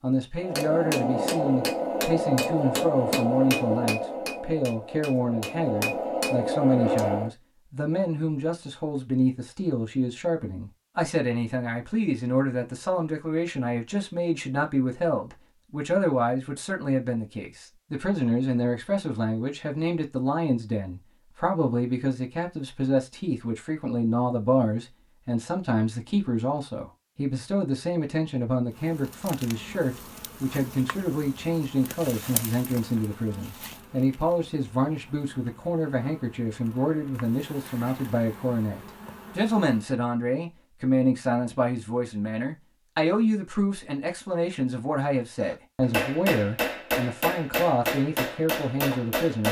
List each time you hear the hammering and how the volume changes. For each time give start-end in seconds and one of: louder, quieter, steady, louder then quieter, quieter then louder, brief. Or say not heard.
0.3-7.3 quieter then louder
45.4-49.4 steady.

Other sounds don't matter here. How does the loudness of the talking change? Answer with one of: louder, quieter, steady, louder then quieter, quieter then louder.
steady.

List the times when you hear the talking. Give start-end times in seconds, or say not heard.
0.0-49.4.